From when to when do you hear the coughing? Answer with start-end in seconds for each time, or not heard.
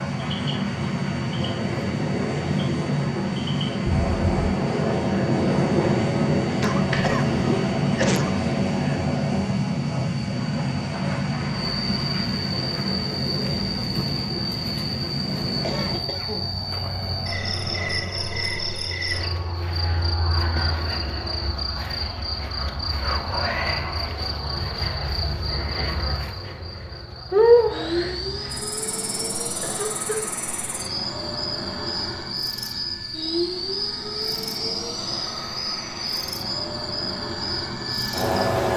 6.6-8.4, 15.6-16.6, 29.6-30.3.